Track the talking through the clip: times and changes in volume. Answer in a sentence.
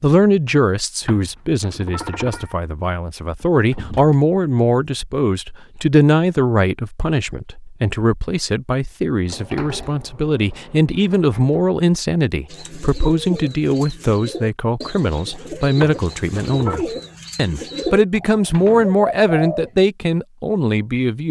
The talking can be heard from 0.0 to 21.2 s, at a steady volume.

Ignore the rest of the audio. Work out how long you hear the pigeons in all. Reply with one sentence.
You can hear the pigeons for 7 seconds altogether.